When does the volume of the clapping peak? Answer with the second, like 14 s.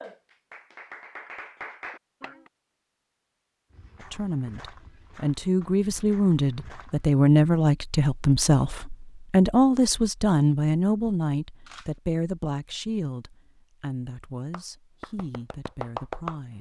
16 s.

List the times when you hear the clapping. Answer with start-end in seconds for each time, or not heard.
0.0-2.5, 14.5-16.4.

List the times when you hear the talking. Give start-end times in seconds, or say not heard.
4.0-16.5.